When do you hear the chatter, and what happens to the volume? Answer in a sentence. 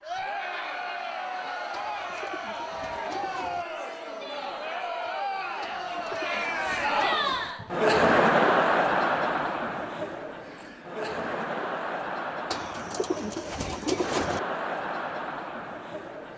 You can hear the chatter from 0.0 to 16.3 s, getting louder then quieter.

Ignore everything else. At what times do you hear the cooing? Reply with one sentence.
The cooing can be heard from 1.7 to 3.6 s, from 5.6 to 7.5 s and from 12.5 to 14.4 s.